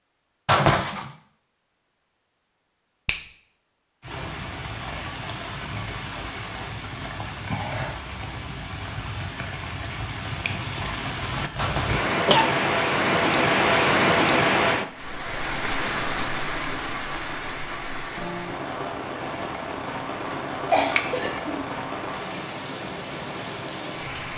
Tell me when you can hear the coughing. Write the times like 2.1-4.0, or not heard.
0.5-1.1, 11.6-12.6, 20.7-21.6.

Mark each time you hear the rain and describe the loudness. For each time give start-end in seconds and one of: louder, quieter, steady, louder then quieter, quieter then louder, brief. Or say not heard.
4.0-24.3 louder then quieter.